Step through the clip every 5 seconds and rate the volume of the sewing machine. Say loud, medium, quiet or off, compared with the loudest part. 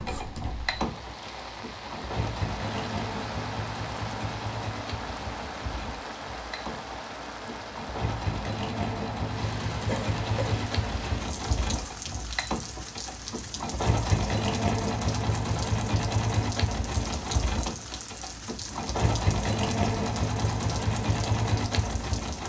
medium, medium, loud, loud, loud.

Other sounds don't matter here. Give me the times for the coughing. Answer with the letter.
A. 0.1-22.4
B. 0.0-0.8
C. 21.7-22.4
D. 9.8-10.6
D.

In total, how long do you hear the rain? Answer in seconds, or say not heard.
22 s.